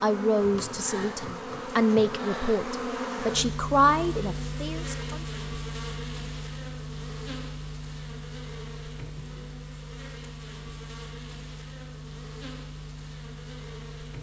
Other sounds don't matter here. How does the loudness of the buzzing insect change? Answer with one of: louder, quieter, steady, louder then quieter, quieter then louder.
quieter.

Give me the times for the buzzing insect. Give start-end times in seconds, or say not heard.
0.0-14.1.